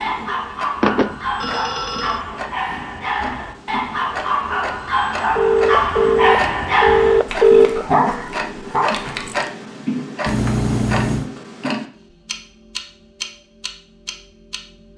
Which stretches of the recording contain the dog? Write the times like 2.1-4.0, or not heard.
0.0-9.5.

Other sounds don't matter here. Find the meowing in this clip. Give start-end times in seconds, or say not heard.
not heard.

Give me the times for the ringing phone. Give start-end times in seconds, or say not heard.
0.8-2.2, 5.3-7.8, 10.2-11.3.